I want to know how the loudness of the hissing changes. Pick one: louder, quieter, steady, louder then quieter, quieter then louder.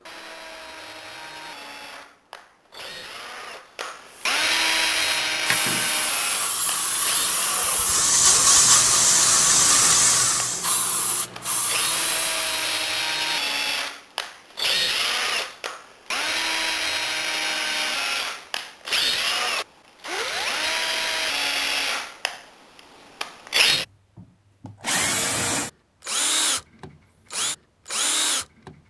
louder then quieter.